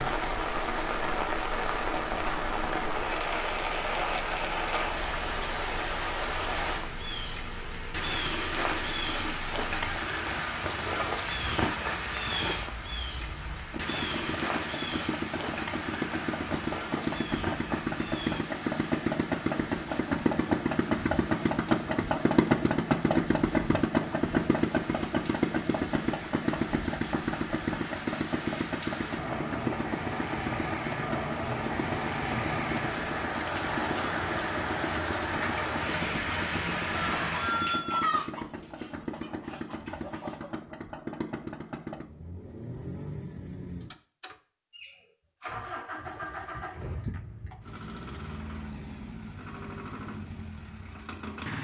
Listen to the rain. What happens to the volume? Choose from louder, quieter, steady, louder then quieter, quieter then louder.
quieter then louder.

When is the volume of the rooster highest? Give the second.
38 s.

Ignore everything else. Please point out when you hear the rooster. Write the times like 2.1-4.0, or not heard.
36.9-40.5.